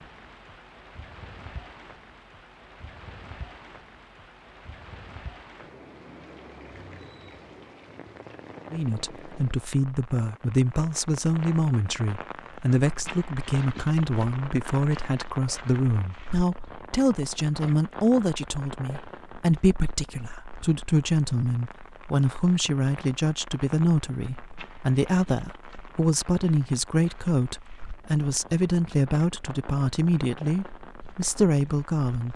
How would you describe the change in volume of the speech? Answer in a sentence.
The volume of the speech stays about the same.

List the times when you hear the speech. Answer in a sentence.
The speech can be heard from 8.7 to 32.3 s.